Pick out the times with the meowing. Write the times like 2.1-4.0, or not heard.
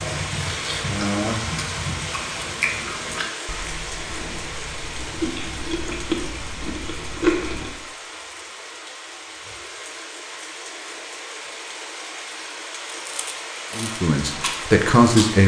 not heard.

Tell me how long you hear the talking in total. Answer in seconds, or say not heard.
2 s.